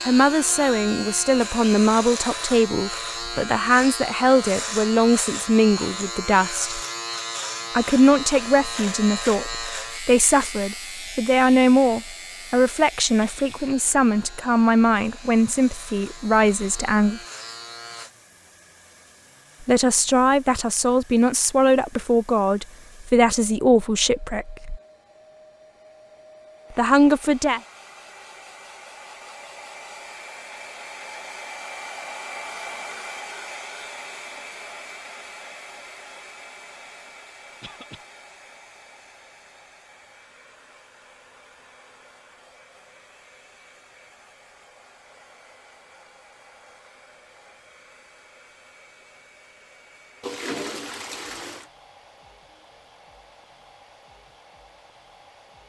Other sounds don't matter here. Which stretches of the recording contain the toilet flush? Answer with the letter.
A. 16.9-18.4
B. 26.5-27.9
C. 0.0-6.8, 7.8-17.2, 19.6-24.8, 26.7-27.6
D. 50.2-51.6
D.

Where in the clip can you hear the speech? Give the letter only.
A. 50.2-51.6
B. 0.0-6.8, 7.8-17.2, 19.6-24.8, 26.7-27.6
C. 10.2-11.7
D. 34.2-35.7
B.